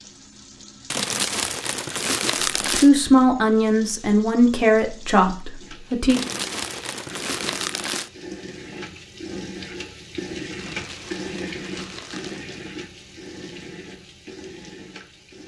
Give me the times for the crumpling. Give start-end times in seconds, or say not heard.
0.9-2.9, 6.0-8.1, 10.6-12.4.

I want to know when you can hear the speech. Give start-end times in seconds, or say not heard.
2.8-6.2.